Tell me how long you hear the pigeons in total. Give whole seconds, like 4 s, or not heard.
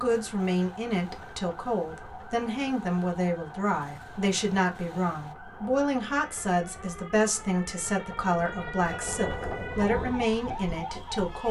not heard.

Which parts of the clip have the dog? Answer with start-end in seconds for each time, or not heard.
not heard.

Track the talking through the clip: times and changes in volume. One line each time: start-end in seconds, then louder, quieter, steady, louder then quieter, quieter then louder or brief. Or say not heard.
0.0-11.4 steady.